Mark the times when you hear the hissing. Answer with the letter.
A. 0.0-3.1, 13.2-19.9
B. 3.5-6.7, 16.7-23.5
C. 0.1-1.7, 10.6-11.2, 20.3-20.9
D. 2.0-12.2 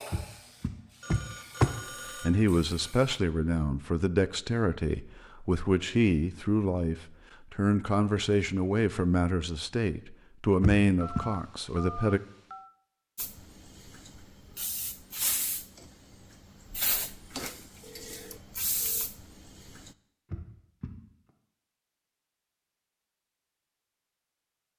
A.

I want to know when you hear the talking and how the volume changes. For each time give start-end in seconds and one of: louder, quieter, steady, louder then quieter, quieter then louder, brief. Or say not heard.
2.0-12.2 steady.